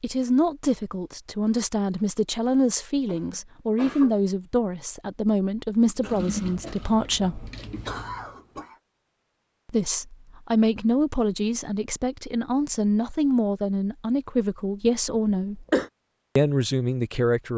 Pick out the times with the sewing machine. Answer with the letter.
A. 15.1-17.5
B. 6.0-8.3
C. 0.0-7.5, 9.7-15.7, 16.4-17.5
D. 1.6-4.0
B.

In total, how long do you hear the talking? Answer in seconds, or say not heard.
15 s.